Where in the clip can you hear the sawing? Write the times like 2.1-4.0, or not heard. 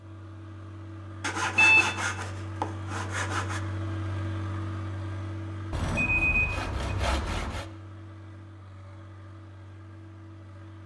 1.2-3.6, 5.7-7.7.